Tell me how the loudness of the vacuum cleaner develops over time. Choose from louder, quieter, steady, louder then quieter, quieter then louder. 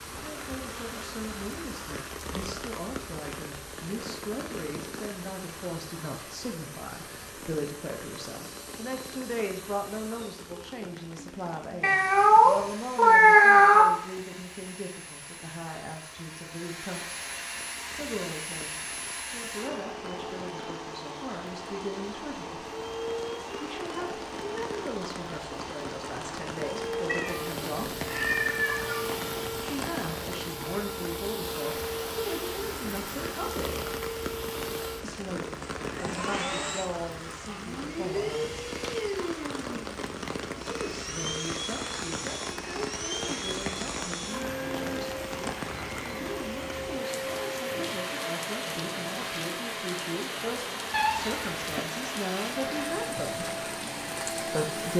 louder.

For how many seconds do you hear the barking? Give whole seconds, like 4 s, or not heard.
not heard.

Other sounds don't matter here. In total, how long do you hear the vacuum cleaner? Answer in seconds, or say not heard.
55 s.